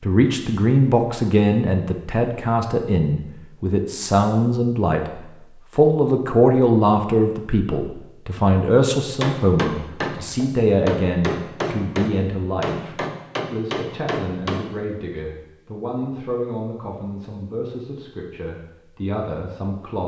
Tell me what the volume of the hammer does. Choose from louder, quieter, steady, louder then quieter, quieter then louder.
steady.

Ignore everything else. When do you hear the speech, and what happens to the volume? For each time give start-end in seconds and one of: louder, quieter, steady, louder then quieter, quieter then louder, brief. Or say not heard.
0.0-20.0 quieter.